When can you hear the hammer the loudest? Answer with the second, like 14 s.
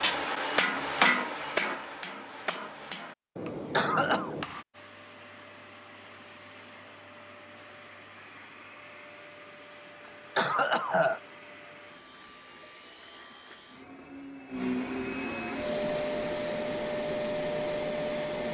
1 s.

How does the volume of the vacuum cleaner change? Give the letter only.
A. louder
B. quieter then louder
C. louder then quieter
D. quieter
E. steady
A.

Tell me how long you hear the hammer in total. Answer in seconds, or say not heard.
5 s.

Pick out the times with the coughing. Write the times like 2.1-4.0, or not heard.
3.7-4.3, 10.3-11.2.